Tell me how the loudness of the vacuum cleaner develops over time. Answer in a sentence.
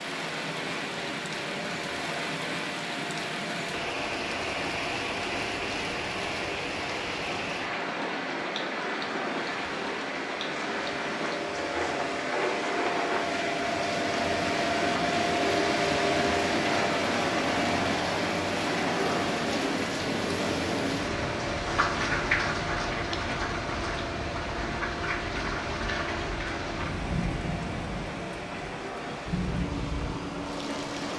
The volume of the vacuum cleaner goes up, then down.